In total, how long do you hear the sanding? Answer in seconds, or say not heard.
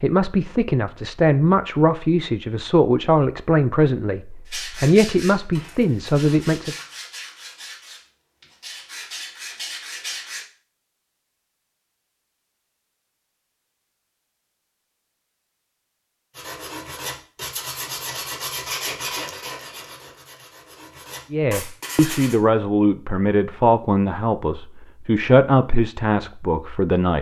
12 s.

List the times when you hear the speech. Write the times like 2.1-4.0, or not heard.
0.0-6.8, 21.3-27.1.